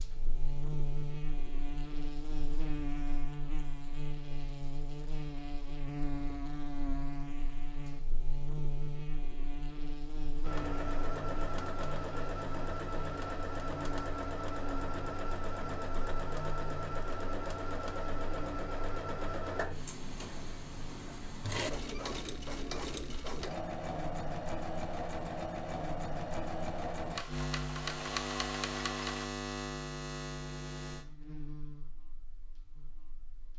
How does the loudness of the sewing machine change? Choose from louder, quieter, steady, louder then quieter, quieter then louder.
steady.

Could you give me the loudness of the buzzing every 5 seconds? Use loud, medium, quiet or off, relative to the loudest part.
loud, loud, medium, medium, medium, loud, medium.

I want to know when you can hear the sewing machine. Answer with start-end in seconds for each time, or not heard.
10.4-29.3.